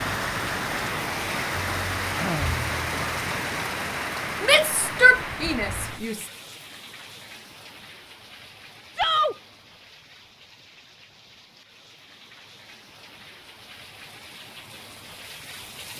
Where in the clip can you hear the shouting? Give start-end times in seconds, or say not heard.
4.4-6.2, 8.9-9.3.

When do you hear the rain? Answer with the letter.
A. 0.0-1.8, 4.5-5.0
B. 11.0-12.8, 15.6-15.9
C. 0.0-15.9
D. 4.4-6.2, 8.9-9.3
C.